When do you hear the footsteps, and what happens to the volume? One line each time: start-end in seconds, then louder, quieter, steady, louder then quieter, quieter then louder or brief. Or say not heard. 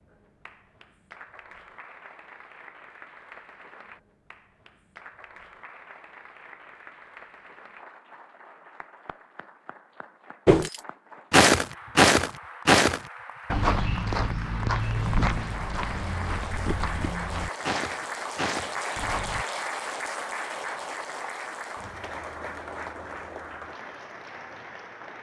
10.4-19.4 quieter.